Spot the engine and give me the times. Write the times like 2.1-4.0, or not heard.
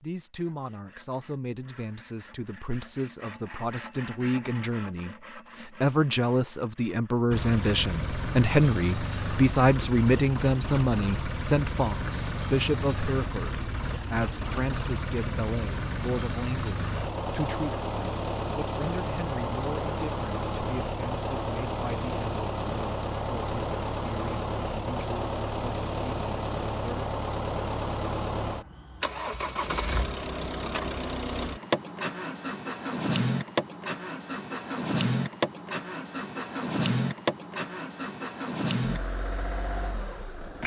7.3-40.6.